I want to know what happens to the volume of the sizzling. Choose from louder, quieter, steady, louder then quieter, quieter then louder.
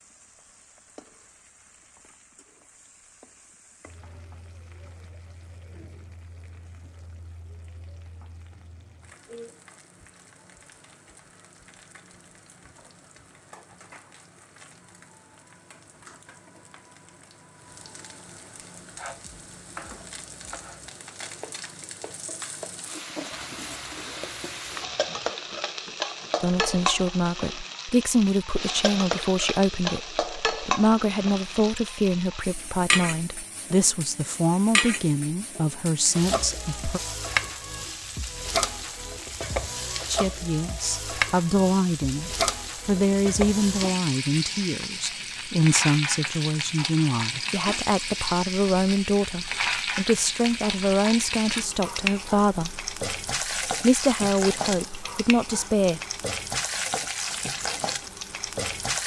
louder.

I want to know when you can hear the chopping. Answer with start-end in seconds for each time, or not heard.
18.8-26.4.